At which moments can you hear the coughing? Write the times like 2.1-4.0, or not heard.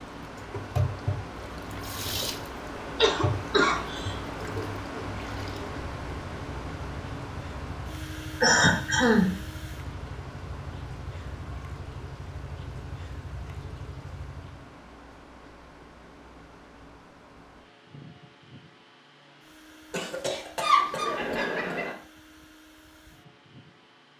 3.0-4.2, 8.4-9.3, 19.9-21.9.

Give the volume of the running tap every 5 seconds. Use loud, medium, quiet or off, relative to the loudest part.
loud, medium, medium, off, off.